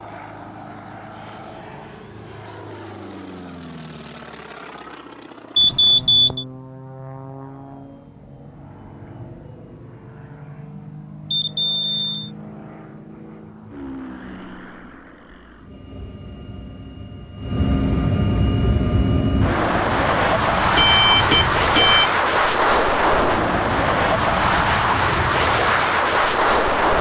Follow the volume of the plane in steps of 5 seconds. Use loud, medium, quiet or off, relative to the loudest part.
quiet, quiet, quiet, medium, loud, loud.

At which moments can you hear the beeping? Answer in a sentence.
You can hear the beeping from 5.5 to 6.5 s, from 11.3 to 12.3 s and from 20.8 to 22.1 s.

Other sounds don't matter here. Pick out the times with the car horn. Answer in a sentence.
You can't hear the car horn here.